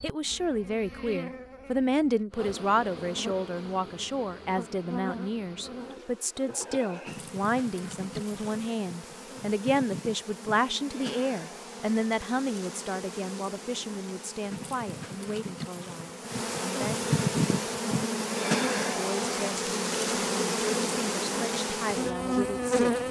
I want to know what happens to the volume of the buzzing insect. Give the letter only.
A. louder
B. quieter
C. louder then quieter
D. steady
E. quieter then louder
A.